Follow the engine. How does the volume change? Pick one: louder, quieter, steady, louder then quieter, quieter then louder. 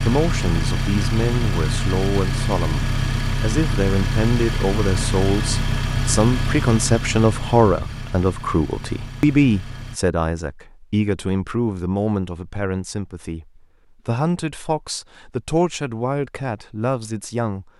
quieter.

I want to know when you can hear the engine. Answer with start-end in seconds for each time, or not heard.
0.0-10.0.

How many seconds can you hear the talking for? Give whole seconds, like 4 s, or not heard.
18 s.